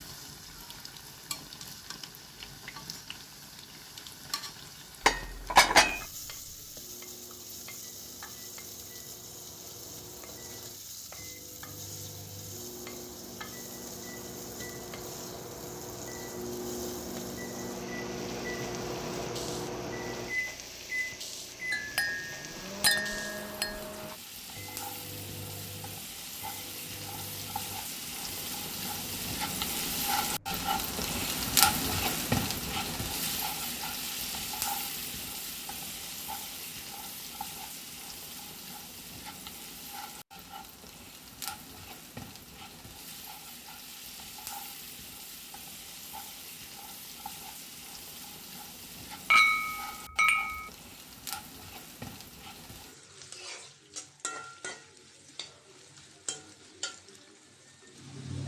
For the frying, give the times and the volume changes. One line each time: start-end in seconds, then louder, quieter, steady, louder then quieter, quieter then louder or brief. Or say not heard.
0.0-58.4 louder then quieter.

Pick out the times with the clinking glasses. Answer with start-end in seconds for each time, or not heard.
5.0-6.0, 21.7-23.8, 49.3-50.7.